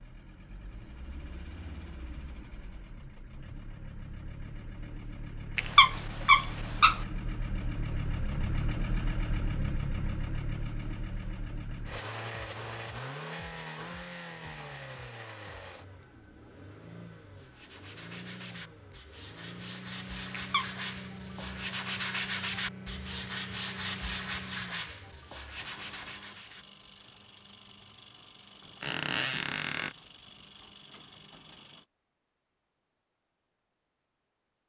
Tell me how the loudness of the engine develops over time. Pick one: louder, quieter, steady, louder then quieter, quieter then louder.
louder then quieter.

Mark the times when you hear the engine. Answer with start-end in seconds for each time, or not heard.
0.0-31.9.